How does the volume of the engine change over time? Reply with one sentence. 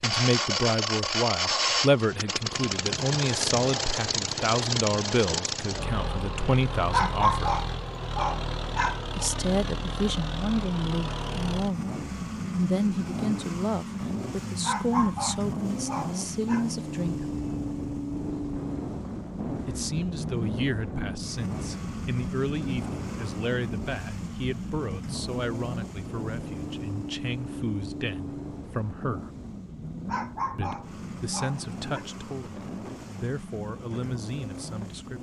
The volume of the engine goes down.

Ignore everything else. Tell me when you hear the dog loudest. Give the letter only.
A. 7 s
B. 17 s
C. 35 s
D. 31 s
A.